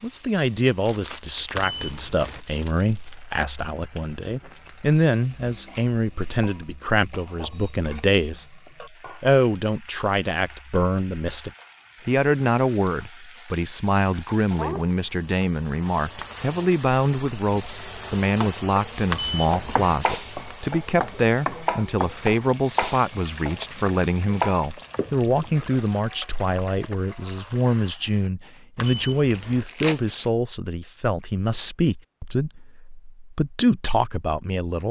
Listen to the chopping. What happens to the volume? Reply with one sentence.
The loudness of the chopping goes down, then up.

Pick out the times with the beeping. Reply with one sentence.
The beeping can be heard from 1.5 to 2.4 s, from 19.1 to 19.9 s and from 28.8 to 29.6 s.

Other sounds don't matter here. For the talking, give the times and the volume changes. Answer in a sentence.
The talking can be heard from 0.0 to 34.8 s, at a steady volume.